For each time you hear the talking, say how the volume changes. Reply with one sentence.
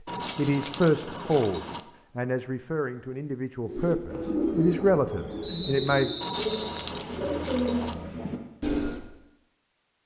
You can hear the talking from 0.3 to 6.2 s, getting quieter then louder.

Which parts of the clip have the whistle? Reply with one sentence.
The whistle can be heard from 5.4 to 6.7 s.